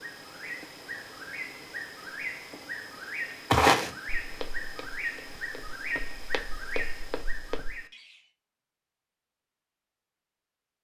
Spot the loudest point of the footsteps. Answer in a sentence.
The volume of the footsteps peaks at 4 seconds.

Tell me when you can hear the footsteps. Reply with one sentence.
You can hear the footsteps from 3.5 to 7.8 s.